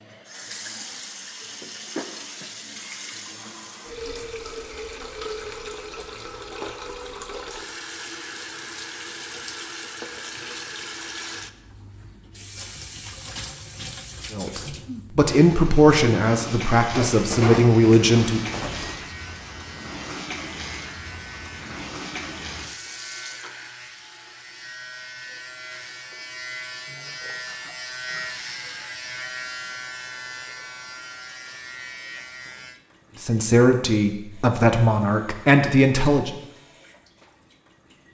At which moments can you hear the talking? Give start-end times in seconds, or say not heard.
14.3-18.4, 33.2-36.3.